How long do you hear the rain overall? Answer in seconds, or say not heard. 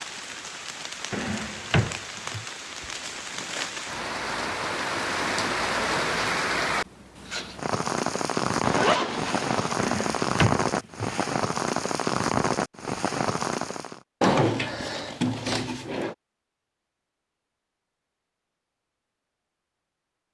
14 s.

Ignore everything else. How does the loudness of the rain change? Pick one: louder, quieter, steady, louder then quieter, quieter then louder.
louder.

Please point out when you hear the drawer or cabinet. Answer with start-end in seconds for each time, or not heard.
1.1-2.5, 9.8-11.3, 14.2-16.1.